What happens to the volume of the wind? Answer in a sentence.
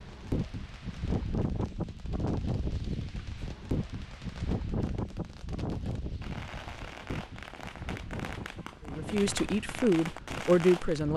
The volume of the wind goes down.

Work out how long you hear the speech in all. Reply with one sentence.
The speech can be heard for 2 seconds in total.